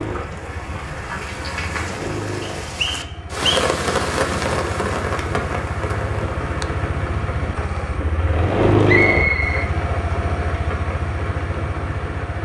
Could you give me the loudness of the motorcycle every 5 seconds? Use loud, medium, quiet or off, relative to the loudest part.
medium, loud, medium.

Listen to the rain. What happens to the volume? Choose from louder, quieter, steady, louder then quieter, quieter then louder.
louder then quieter.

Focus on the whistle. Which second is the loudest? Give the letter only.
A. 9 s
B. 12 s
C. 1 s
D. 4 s
A.